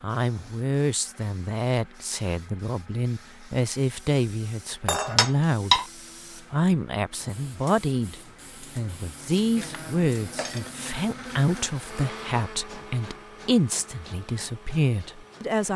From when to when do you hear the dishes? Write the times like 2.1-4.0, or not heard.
4.8-5.8, 9.6-11.4.